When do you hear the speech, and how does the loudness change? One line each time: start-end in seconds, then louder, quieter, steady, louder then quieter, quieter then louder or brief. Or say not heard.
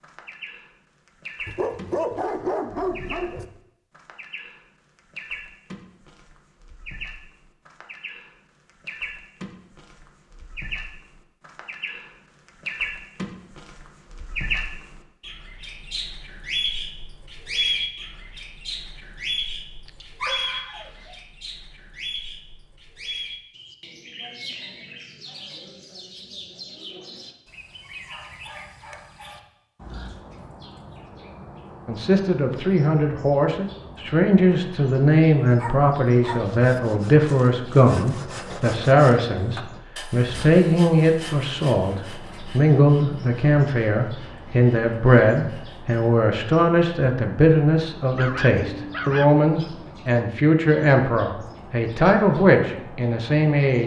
31.9-53.8 steady.